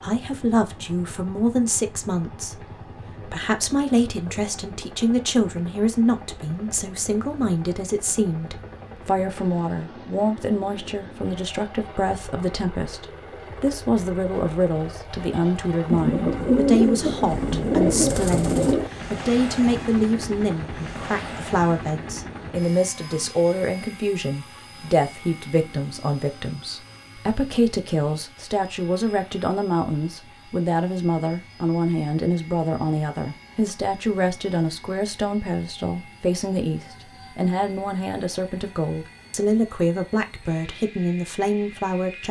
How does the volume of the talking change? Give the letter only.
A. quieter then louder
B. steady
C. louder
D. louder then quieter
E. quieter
B.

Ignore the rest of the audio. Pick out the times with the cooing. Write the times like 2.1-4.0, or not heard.
15.9-18.9.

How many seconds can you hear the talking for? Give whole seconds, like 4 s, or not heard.
42 s.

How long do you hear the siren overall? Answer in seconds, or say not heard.
not heard.